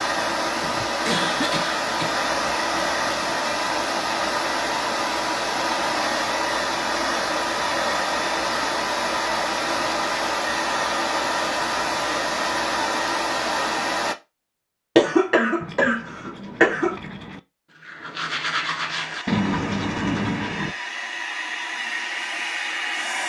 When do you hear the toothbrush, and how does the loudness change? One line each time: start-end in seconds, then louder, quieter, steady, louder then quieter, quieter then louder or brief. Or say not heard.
15.6-20.8 louder.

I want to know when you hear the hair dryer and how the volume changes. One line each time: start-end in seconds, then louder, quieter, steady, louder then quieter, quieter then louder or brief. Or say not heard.
0.0-14.2 steady
18.9-23.2 louder.